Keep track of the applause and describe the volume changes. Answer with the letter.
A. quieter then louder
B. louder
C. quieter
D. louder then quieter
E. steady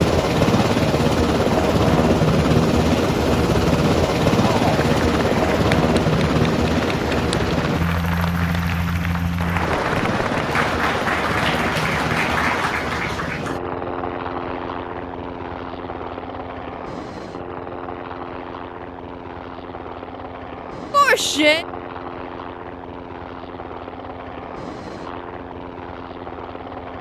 B.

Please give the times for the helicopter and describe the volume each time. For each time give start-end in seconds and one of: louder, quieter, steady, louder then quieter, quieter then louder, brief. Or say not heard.
0.0-26.9 quieter.